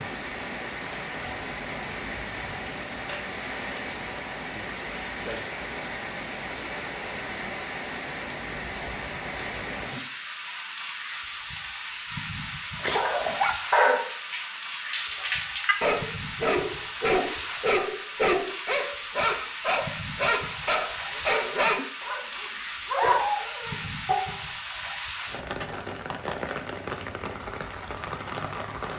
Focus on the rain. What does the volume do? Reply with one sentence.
The loudness of the rain stays about the same.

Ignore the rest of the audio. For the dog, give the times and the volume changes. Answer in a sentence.
The dog can be heard from 12.8 to 24.4 s, at a steady volume.